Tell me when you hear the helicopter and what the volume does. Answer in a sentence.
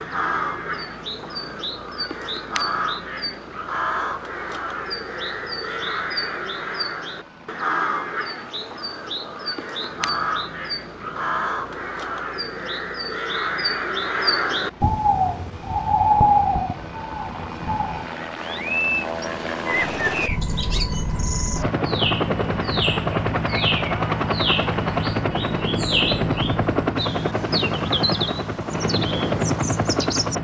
You can hear the helicopter from 0.0 to 30.3 s, getting louder.